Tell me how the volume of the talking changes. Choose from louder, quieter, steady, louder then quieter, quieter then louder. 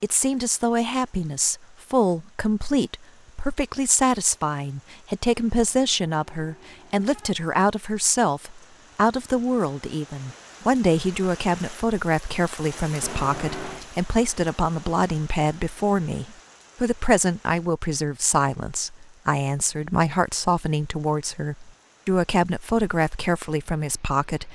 steady.